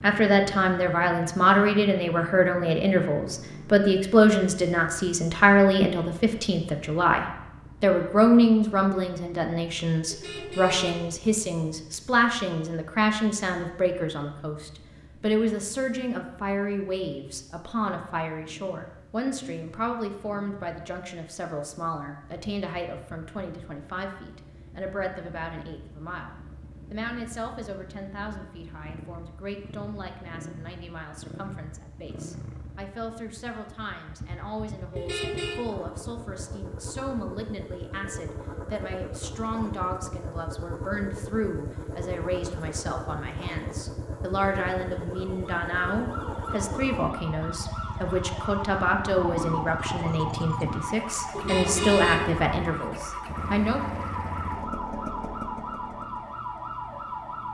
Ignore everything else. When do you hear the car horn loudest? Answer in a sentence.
The volume of the car horn peaks at 52 seconds.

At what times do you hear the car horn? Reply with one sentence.
You can hear the car horn from 10.1 to 11.2 s, from 35.0 to 35.6 s and from 51.4 to 52.5 s.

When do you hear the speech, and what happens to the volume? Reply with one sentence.
The speech can be heard from 0.0 to 53.9 s, getting quieter then louder.